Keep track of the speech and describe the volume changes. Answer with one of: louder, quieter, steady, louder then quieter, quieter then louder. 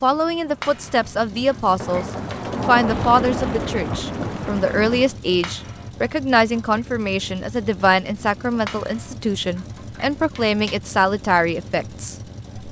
steady.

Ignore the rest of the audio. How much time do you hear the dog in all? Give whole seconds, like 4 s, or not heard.
not heard.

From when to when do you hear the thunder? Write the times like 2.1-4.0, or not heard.
1.8-5.2.